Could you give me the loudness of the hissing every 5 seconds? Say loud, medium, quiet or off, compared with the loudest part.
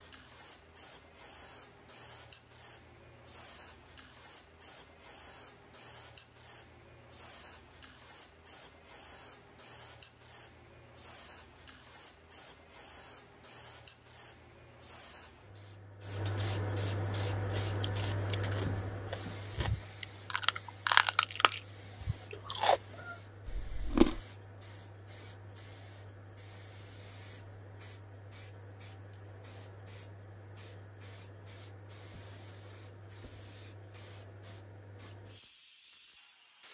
quiet, quiet, quiet, loud, quiet, quiet, quiet, quiet.